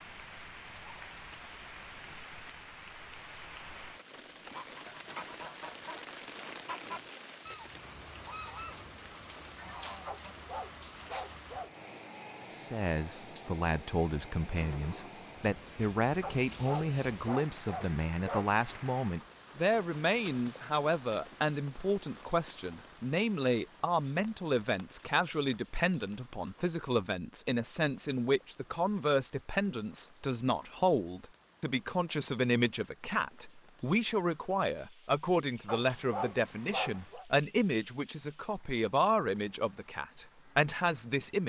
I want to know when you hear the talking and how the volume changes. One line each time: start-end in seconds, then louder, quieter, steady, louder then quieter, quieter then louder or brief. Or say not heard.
12.5-41.4 steady.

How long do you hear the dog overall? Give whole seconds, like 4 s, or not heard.
6 s.